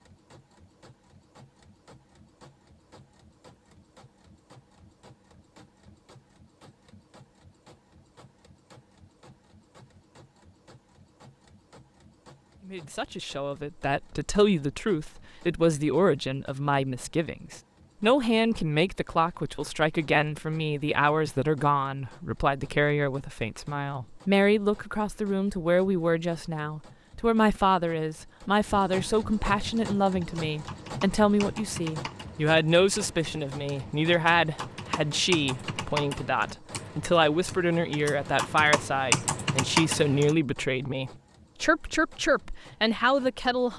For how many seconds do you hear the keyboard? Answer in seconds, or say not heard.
11 s.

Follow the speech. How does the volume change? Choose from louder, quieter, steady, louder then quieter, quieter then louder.
steady.